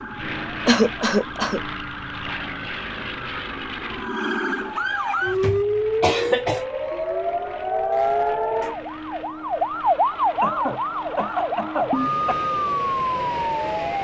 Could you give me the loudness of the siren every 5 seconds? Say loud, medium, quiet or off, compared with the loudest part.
medium, loud, loud.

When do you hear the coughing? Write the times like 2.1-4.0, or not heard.
0.7-1.6, 5.2-6.7, 10.4-12.3.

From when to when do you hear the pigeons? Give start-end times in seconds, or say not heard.
not heard.